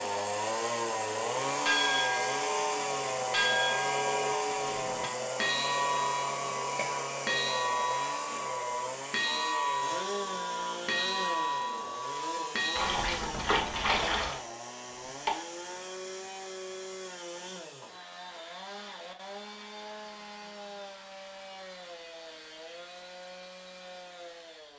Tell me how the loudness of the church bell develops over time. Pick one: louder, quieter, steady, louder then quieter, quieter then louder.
steady.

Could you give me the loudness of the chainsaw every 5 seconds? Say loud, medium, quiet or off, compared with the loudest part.
loud, loud, medium, medium, quiet.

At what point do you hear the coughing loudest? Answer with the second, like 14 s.
15 s.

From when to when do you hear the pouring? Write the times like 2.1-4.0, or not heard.
12.8-14.4.